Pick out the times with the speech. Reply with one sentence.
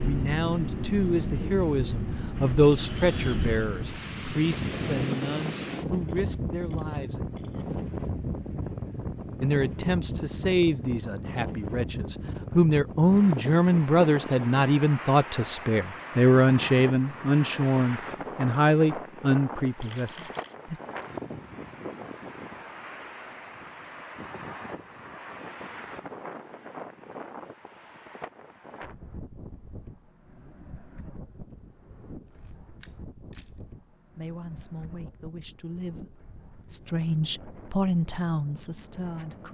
The speech can be heard from 0.0 to 7.2 s, from 9.4 to 20.8 s and from 34.1 to 39.4 s.